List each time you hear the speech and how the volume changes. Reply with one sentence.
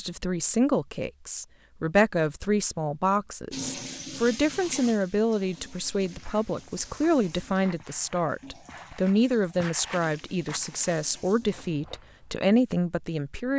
You can hear the speech from 0.0 to 13.5 s, at a steady volume.